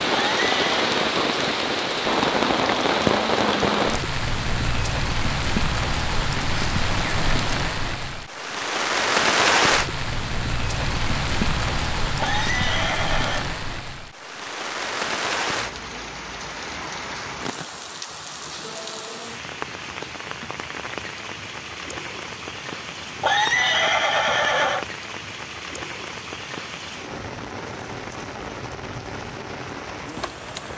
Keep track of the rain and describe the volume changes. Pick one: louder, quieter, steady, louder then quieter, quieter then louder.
quieter.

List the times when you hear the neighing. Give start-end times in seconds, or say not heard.
0.1-0.8, 12.2-13.4, 23.2-24.9.